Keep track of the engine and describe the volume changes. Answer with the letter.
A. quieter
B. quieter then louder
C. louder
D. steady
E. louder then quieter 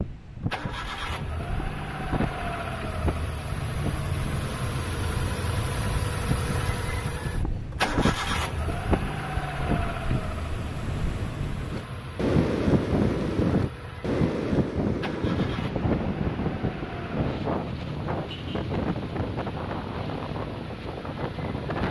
A.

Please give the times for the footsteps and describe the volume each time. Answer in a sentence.
The footsteps can't be heard in this clip.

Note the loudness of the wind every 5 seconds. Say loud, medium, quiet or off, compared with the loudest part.
medium, medium, loud, loud, medium.